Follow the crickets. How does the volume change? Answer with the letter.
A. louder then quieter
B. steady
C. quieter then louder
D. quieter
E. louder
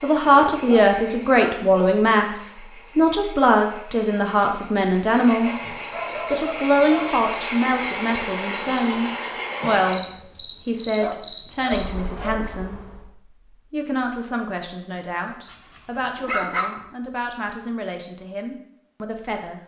E.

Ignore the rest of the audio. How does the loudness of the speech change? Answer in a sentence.
The volume of the speech goes down.